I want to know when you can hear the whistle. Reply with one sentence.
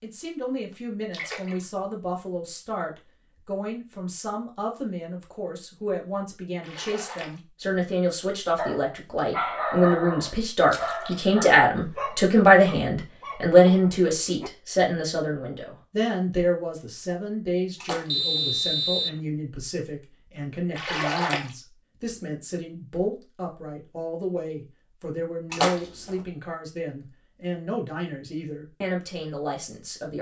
You can hear the whistle from 18.1 to 19.2 s.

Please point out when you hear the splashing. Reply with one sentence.
You can hear the splashing from 1.1 to 1.9 s, from 6.6 to 7.4 s, from 10.7 to 11.2 s, from 17.8 to 18.5 s, from 20.8 to 21.5 s and from 25.5 to 26.2 s.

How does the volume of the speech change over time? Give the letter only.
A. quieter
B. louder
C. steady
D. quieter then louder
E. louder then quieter
E.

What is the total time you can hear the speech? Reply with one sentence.
The speech can be heard for 30 seconds in total.